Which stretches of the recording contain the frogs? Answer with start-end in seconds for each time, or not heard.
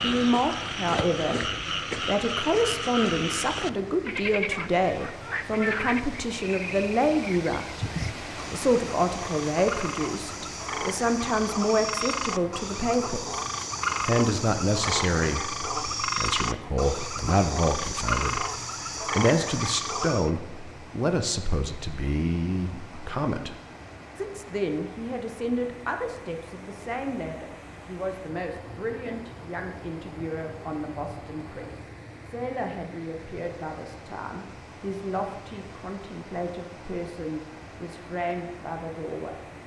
0.0-20.3.